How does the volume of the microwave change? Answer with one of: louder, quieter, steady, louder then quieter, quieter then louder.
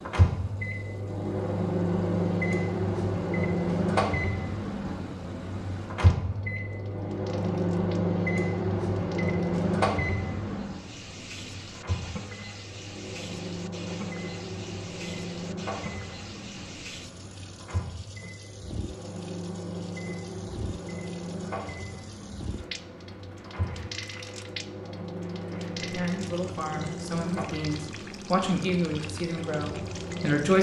quieter.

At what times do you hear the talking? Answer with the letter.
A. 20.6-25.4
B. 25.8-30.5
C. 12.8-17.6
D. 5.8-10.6
B.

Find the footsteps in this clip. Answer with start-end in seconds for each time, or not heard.
not heard.